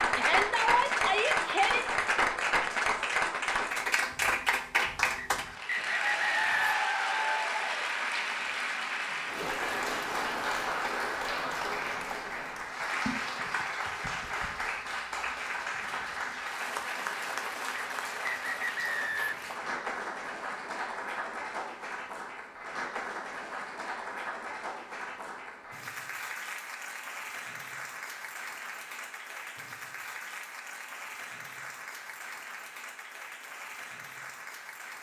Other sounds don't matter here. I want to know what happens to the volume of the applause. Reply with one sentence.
The loudness of the applause goes down.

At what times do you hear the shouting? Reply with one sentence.
The shouting can be heard from 0.1 to 1.9 s.